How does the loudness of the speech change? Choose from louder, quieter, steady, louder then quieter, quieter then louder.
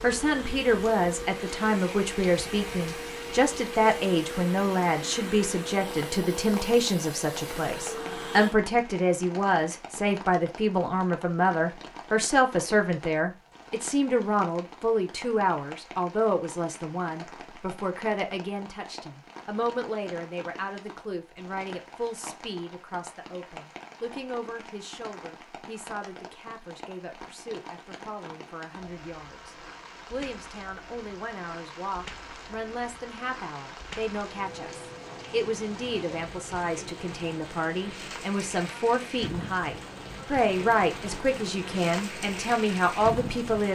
quieter then louder.